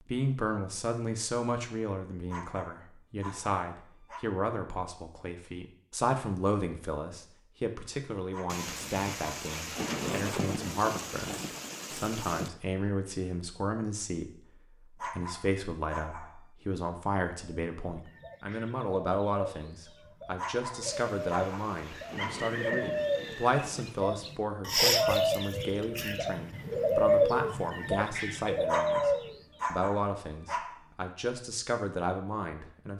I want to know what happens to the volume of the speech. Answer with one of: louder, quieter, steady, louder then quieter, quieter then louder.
steady.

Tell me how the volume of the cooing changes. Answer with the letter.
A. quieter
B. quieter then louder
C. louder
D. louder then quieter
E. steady
C.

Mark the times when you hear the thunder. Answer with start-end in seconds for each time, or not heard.
8.4-12.5, 20.8-24.1.